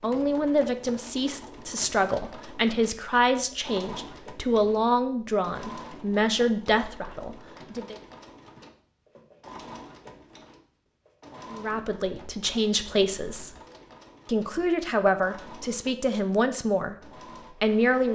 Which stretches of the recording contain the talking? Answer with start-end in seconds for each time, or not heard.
0.0-8.0, 11.5-13.6, 14.2-18.1.